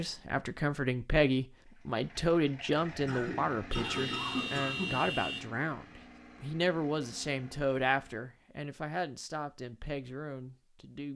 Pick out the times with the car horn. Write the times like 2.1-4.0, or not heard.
3.7-5.5.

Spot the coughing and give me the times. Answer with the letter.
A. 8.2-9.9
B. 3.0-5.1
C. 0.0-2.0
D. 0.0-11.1
B.